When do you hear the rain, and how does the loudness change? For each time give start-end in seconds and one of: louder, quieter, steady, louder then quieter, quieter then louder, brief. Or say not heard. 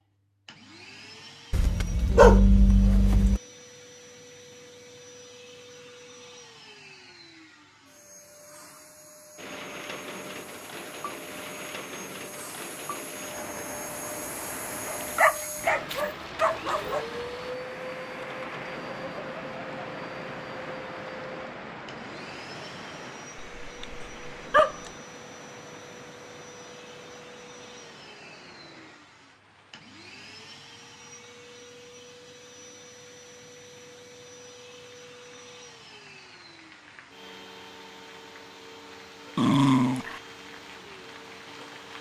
9.3-41.9 quieter then louder.